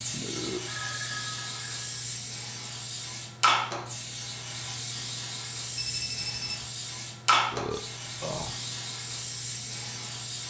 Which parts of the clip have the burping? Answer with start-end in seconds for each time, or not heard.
0.1-0.7, 7.5-8.6.